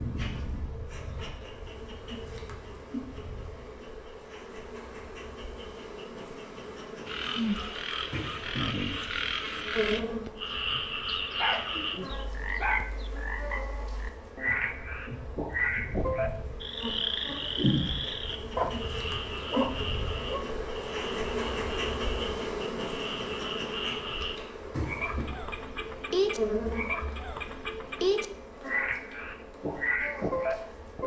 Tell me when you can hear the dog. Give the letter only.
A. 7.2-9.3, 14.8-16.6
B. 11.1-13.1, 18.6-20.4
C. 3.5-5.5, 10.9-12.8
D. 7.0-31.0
B.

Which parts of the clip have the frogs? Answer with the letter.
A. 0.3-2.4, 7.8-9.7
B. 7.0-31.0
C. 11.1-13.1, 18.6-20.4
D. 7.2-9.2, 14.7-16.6
B.